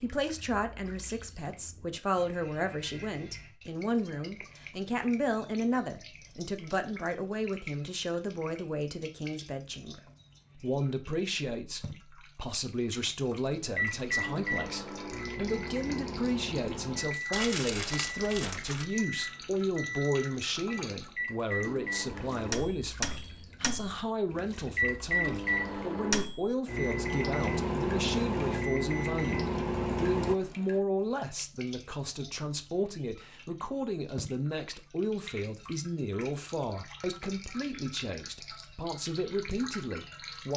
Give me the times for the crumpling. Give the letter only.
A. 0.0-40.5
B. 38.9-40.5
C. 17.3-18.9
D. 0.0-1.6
C.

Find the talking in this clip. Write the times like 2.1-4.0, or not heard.
0.0-40.5.